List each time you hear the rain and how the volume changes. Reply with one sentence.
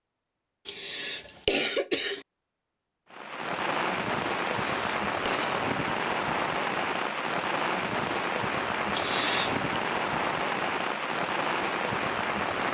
You can hear the rain from 3.1 to 12.6 s, at a steady volume.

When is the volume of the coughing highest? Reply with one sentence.
The loudest moment of the coughing is at 2 seconds.